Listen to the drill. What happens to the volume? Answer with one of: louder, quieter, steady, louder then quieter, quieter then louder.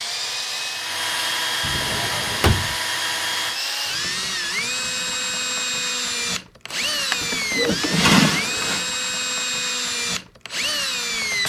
steady.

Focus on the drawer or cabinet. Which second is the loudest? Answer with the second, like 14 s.
8 s.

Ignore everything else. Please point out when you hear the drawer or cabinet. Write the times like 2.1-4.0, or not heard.
1.6-2.8, 6.7-8.8.